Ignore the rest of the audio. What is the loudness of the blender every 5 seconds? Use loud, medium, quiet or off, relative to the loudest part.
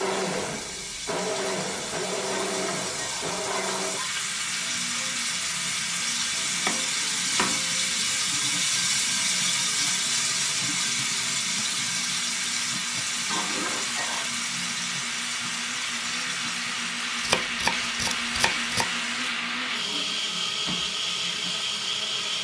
loud, medium, medium, loud, loud.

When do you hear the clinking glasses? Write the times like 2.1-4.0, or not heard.
2.3-4.1, 13.2-14.3.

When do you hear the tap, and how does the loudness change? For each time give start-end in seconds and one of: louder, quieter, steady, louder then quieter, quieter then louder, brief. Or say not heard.
0.0-22.3 louder then quieter.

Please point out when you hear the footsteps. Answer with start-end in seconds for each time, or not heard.
not heard.